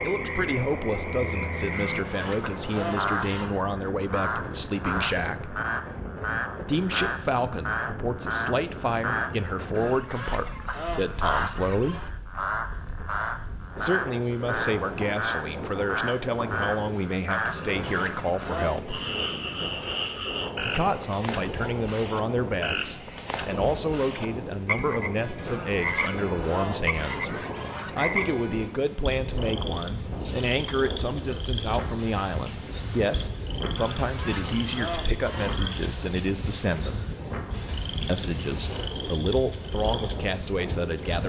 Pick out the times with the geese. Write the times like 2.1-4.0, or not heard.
1.7-3.6, 9.7-12.1, 17.4-19.1, 25.4-27.9, 33.8-35.8.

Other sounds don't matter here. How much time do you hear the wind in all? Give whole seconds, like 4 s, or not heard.
41 s.